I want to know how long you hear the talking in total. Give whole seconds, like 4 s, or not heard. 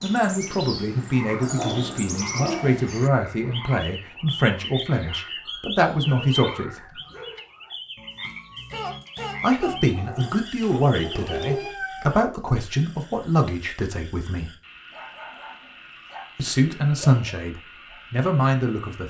15 s.